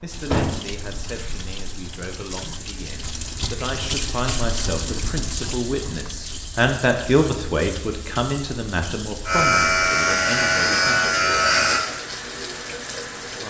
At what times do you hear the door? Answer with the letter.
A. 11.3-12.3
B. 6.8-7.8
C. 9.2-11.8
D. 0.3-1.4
D.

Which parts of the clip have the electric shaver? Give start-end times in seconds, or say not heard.
9.2-11.8.